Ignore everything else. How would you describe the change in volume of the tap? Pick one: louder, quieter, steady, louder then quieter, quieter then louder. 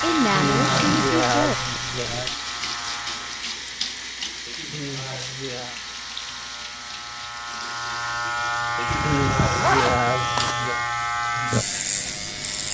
quieter.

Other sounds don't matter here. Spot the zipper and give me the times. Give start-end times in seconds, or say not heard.
0.5-2.4, 8.8-10.6.